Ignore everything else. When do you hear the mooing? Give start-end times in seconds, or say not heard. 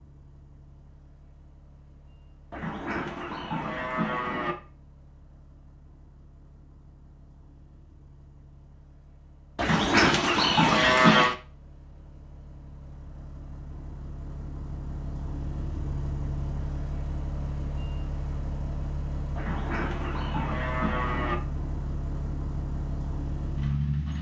2.5-4.5, 9.6-11.3, 19.4-21.4.